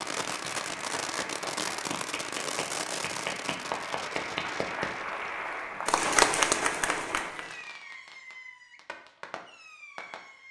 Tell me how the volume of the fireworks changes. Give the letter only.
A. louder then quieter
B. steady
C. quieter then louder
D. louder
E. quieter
E.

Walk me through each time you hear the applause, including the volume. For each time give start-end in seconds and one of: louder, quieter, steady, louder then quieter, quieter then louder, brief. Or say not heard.
0.0-7.5 louder.